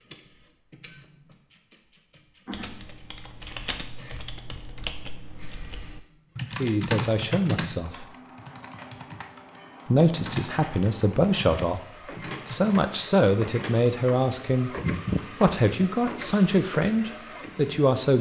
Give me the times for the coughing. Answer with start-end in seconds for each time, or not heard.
2.5-3.0.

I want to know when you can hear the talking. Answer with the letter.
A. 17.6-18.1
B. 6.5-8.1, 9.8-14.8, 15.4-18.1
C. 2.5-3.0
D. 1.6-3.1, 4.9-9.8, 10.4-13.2
B.